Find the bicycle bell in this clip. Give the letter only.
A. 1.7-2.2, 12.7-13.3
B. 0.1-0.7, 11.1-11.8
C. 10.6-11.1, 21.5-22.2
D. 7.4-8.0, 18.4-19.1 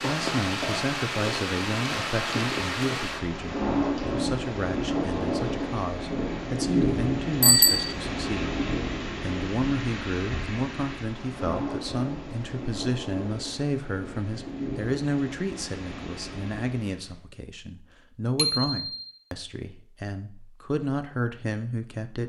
D.